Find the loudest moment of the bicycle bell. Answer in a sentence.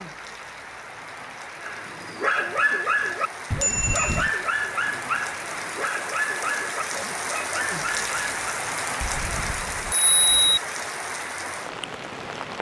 The volume of the bicycle bell peaks at 10 seconds.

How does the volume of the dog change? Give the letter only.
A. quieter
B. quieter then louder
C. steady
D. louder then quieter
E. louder
A.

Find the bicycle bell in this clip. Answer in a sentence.
The bicycle bell can be heard from 3.5 to 4.3 s and from 9.0 to 10.6 s.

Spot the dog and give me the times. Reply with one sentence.
The dog can be heard from 1.6 to 8.4 s.